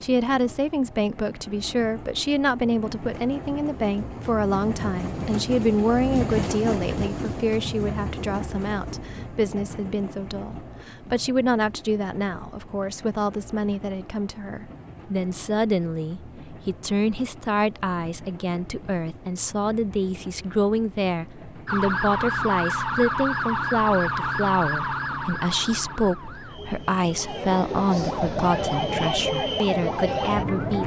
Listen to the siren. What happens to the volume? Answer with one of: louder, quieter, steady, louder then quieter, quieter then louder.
quieter then louder.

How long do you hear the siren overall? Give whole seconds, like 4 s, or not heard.
9 s.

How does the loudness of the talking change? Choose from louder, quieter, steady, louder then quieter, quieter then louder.
steady.